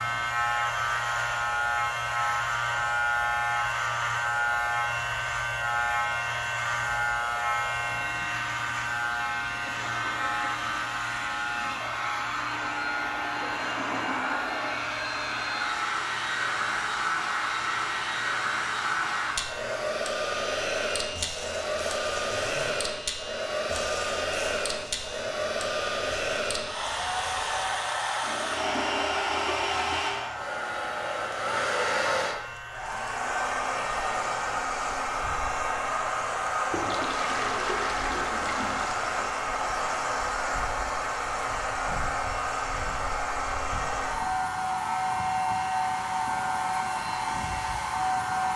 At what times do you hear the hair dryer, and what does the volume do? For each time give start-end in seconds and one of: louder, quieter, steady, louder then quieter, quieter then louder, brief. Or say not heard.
0.0-48.5 louder.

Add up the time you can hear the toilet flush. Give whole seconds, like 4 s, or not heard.
6 s.